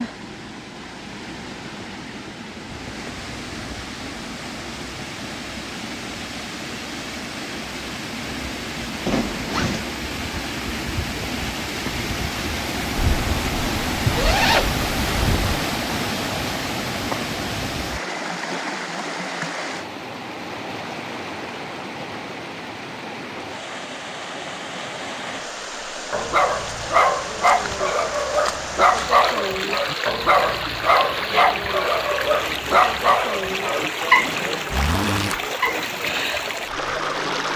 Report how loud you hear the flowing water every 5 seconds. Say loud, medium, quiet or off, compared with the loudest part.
medium, medium, loud, loud, medium, loud, loud, loud.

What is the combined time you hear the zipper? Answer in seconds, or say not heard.
4 s.